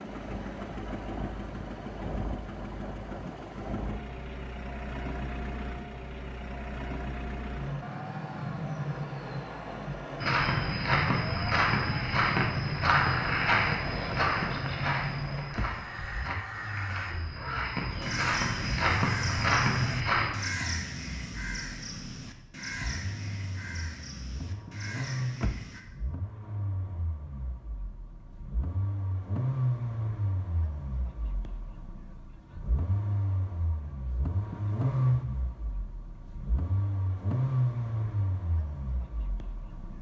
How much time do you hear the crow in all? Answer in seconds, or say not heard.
10 s.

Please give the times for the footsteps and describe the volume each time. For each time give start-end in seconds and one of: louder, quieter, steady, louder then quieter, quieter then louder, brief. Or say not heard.
10.2-20.3 quieter then louder.